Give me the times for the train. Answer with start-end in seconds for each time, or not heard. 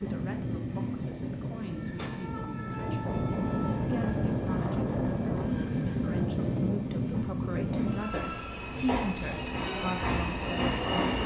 0.0-11.2.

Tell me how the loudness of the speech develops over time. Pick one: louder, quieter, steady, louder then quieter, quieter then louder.
louder.